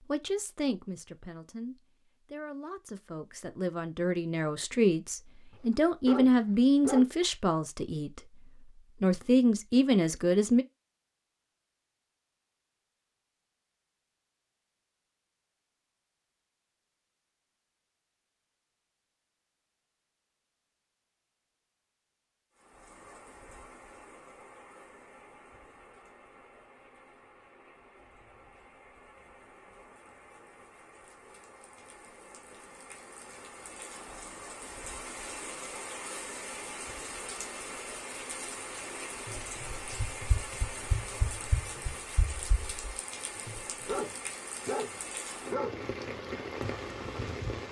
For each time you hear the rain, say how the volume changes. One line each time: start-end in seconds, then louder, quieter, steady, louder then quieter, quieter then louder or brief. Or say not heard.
22.6-47.6 louder.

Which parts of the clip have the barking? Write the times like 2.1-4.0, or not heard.
6.0-7.0, 43.4-45.8.